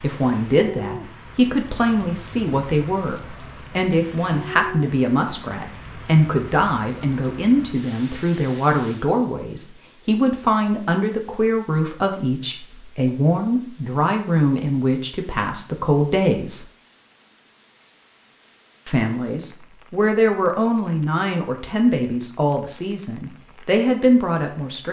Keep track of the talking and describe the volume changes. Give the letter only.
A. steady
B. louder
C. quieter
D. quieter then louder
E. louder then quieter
A.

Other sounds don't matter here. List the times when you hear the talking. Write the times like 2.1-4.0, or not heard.
0.0-16.6, 18.9-24.8.